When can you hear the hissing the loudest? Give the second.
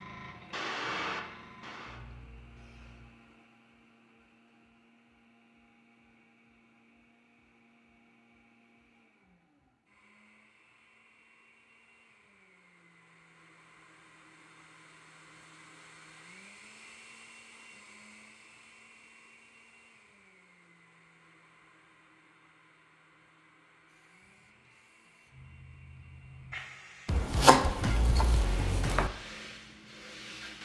1 s.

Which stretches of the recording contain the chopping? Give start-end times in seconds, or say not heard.
27.1-29.1.